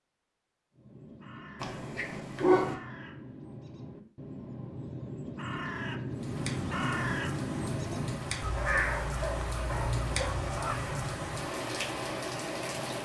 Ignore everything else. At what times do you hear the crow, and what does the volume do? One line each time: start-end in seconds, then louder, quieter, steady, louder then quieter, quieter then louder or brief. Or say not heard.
0.7-10.9 louder.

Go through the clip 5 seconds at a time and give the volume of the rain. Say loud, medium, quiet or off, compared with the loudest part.
off, loud, loud.